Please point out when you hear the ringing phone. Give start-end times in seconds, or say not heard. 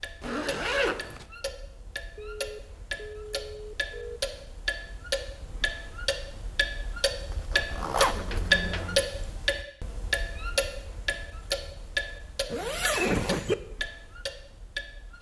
2.1-4.2, 8.1-9.1.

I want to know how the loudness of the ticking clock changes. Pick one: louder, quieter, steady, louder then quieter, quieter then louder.
louder then quieter.